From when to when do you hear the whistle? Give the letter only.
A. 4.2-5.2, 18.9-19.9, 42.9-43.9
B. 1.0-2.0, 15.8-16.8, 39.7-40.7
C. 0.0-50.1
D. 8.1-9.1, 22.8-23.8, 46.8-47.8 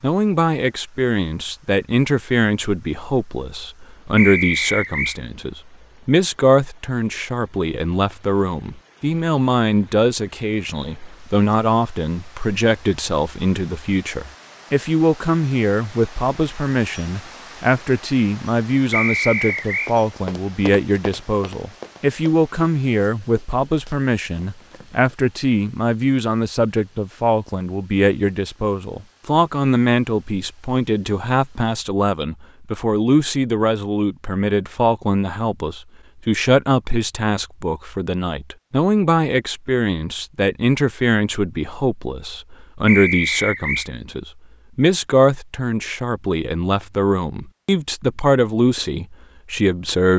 A.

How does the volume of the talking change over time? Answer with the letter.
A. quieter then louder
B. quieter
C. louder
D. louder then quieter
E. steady
E.